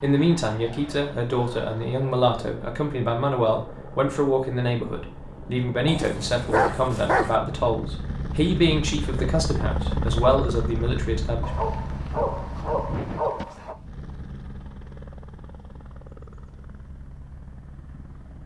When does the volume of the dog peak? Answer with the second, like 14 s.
7 s.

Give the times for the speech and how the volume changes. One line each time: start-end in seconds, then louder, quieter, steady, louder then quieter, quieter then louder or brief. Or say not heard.
0.0-11.5 steady.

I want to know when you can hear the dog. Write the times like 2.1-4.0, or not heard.
5.8-7.4, 11.4-13.8.